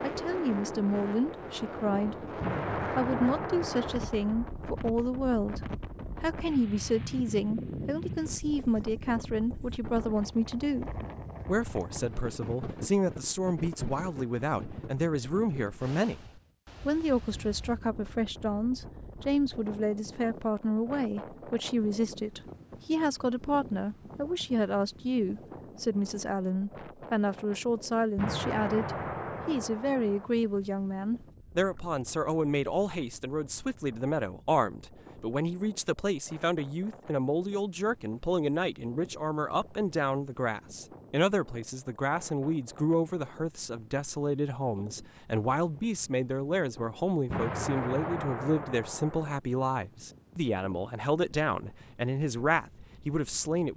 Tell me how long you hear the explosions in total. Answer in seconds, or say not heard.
6 s.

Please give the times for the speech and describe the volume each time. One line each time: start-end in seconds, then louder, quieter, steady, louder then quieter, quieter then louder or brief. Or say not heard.
0.0-53.7 steady.